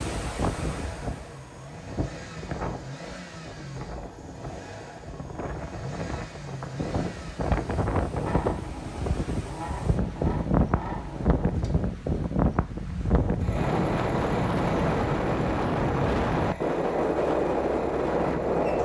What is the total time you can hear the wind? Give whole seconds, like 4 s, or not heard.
19 s.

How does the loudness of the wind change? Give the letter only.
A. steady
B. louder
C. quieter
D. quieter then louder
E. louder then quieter
B.